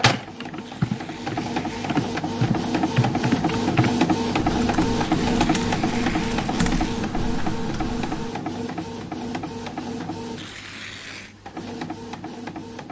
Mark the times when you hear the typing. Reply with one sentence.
The typing can be heard from 0.0 to 8.3 s.